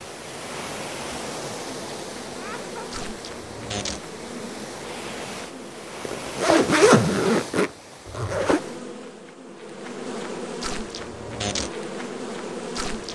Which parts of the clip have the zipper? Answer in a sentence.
You can hear the zipper from 6.0 to 8.6 s.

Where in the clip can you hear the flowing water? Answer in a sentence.
You can hear the flowing water from 0.0 to 8.8 s.